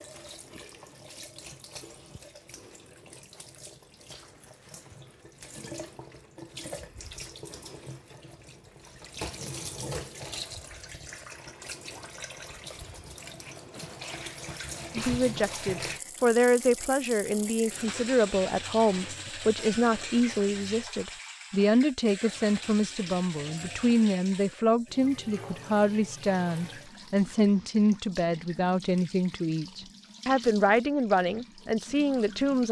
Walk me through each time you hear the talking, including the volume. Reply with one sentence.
You can hear the talking from 14.9 to 32.6 s, at a steady volume.